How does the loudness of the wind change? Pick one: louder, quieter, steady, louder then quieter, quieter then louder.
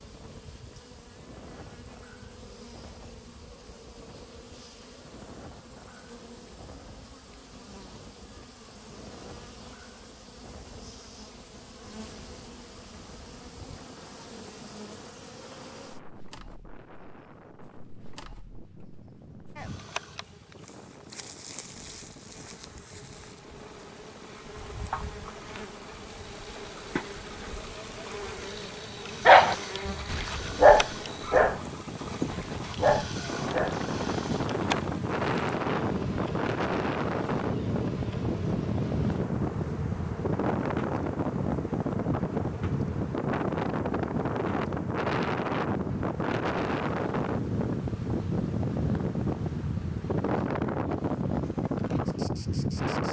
louder.